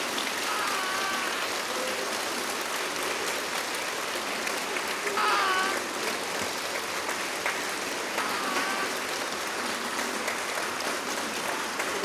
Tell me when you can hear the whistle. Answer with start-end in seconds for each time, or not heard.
not heard.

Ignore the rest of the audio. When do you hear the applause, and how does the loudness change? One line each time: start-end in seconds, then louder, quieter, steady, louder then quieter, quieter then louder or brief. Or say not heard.
0.0-12.0 steady.